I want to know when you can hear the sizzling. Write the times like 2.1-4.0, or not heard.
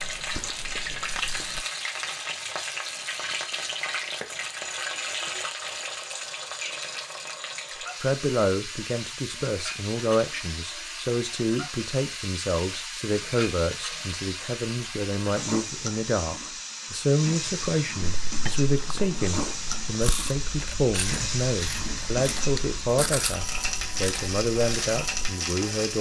0.0-25.9.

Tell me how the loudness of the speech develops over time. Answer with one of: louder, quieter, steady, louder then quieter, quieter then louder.
steady.